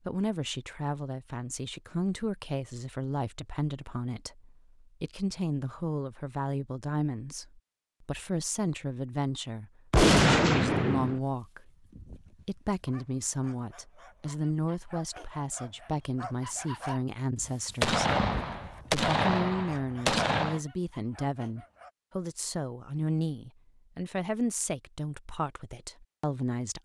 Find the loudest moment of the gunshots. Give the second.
10 s.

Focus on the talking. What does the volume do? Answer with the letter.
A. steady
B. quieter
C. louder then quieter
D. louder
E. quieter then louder
A.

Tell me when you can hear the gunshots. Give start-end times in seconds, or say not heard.
9.9-11.2, 17.8-20.6.